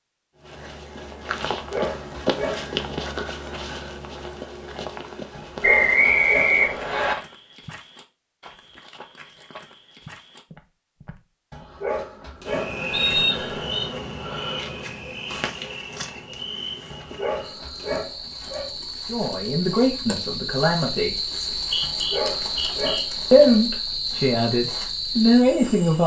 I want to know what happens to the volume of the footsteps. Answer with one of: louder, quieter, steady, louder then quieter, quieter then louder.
quieter.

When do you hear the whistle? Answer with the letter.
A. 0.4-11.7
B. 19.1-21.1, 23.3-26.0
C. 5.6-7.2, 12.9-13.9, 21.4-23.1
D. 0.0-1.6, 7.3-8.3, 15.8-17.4
C.